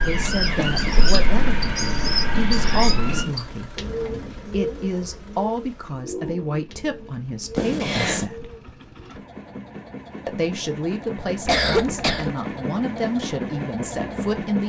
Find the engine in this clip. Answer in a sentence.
You can hear the engine from 0.0 to 14.6 s.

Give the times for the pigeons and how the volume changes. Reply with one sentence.
You can hear the pigeons from 0.2 to 9.2 s, getting quieter.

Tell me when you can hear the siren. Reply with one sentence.
The siren can be heard from 0.0 to 3.2 s.